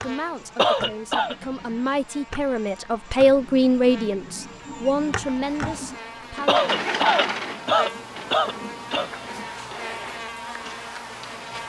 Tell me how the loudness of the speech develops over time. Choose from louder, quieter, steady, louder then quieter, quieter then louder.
louder then quieter.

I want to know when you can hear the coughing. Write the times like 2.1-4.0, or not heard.
0.6-1.4, 6.5-9.1.